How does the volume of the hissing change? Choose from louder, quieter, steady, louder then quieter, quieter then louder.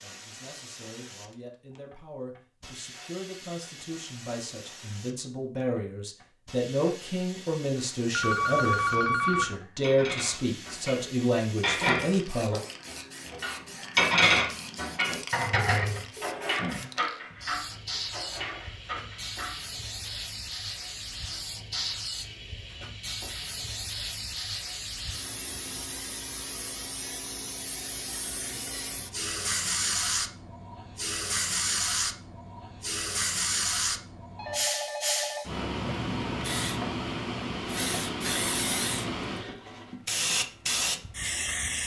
louder.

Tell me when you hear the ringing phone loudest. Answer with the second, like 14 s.
9 s.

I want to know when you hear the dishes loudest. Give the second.
14 s.